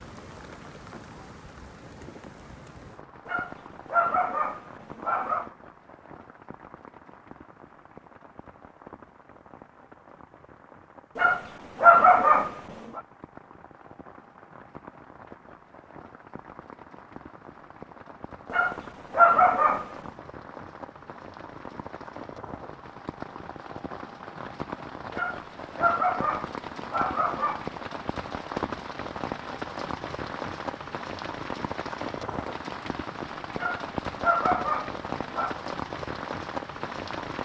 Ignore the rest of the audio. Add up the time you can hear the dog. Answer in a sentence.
The dog can be heard for 10 seconds in total.